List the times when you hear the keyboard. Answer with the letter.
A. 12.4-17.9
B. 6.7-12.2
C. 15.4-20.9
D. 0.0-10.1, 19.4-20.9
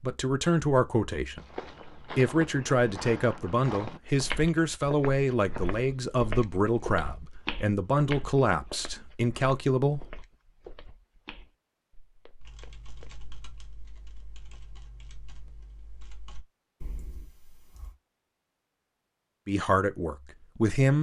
A.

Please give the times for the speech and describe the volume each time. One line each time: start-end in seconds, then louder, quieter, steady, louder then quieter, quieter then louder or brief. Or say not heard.
0.0-10.1 steady
19.4-20.9 brief.